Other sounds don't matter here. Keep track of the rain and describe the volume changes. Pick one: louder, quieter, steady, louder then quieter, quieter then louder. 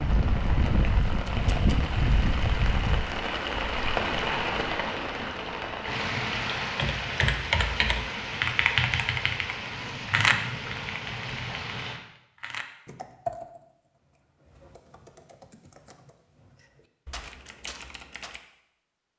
quieter.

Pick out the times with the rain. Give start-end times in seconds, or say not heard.
0.0-12.0.